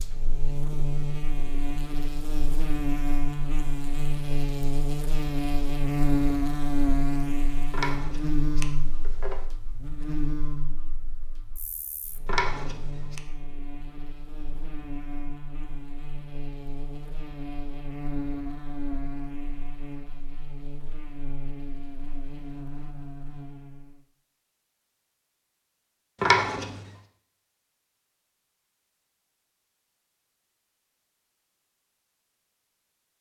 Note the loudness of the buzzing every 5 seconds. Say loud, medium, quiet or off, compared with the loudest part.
loud, loud, medium, medium, quiet, off, off.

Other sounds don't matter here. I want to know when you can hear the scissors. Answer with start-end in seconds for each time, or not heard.
7.7-9.3, 12.2-13.2, 26.2-26.8.